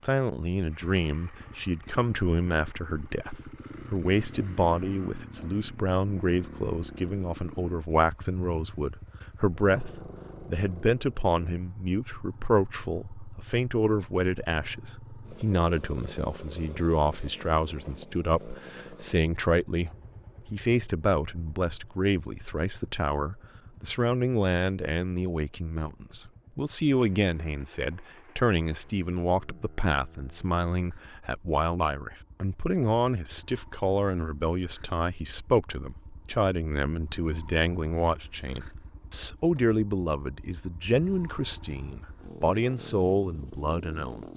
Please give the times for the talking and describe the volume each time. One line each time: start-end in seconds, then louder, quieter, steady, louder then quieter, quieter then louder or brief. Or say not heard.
0.0-19.9 steady
20.5-44.3 steady.